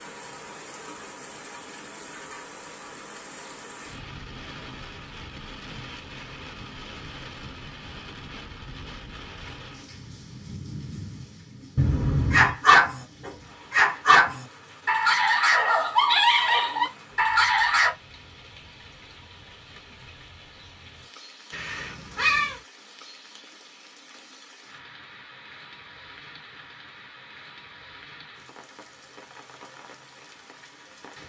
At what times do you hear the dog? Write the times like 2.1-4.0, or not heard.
12.3-17.9.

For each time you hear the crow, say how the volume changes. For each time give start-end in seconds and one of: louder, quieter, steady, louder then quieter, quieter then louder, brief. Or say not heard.
not heard.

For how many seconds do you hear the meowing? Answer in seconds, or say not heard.
2 s.